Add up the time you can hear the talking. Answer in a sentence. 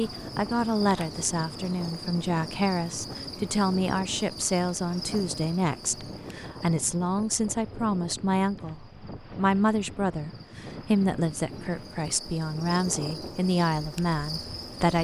You can hear the talking for 15 seconds altogether.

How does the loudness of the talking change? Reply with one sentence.
The loudness of the talking stays about the same.